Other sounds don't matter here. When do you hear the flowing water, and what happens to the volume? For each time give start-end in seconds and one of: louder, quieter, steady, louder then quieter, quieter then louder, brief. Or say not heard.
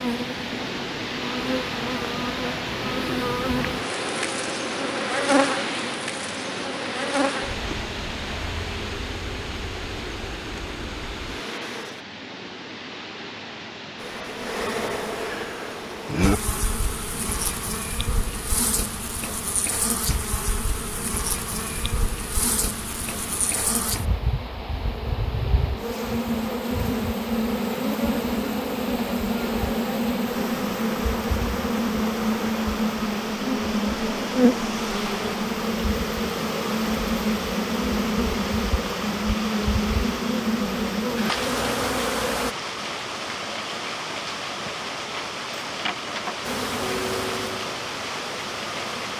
0.0-49.1 quieter then louder.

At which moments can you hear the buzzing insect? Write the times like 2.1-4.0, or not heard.
0.0-12.1, 14.0-42.5, 46.4-49.1.